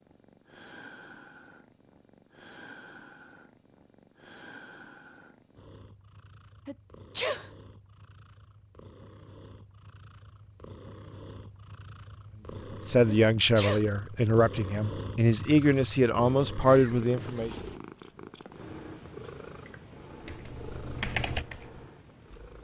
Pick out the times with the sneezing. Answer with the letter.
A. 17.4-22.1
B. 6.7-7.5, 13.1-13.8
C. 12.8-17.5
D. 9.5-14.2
B.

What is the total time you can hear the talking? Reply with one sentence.
You can hear the talking for 5 seconds altogether.